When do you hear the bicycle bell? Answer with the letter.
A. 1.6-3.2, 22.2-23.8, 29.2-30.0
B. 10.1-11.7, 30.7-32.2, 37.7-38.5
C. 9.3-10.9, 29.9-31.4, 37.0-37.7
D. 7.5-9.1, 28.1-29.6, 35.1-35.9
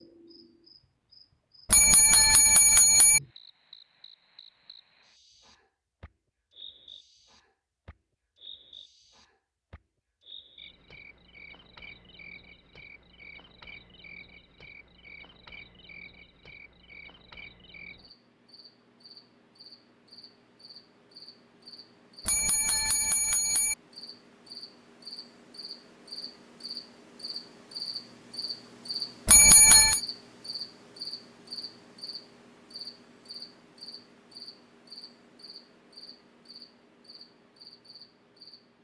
A.